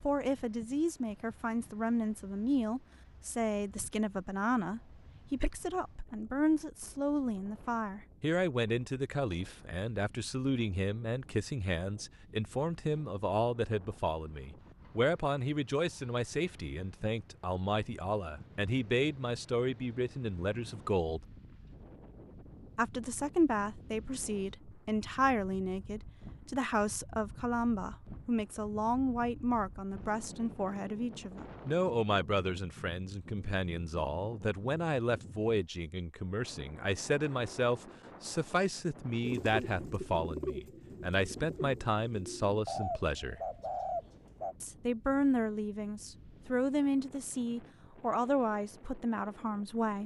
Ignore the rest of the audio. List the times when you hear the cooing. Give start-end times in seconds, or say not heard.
39.2-44.5.